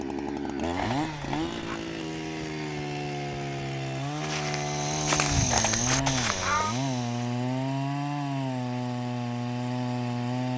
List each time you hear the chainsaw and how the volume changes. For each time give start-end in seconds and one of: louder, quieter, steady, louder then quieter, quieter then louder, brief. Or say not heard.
0.0-10.5 steady.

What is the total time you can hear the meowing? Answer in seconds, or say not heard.
2 s.